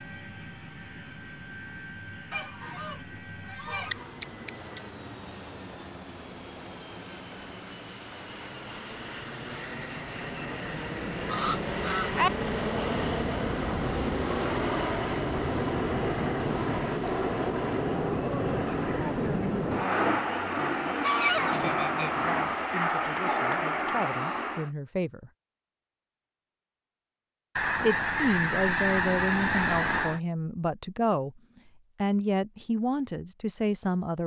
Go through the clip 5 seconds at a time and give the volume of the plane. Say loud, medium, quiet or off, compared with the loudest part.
quiet, quiet, loud, loud, loud, off, off.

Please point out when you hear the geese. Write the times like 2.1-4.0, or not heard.
2.3-4.8, 11.2-12.3, 20.8-22.2, 27.6-30.2.